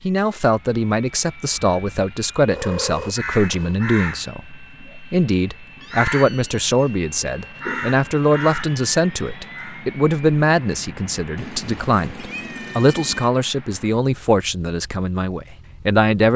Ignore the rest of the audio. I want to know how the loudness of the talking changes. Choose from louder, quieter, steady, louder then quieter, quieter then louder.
steady.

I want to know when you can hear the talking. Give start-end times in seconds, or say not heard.
0.0-16.3.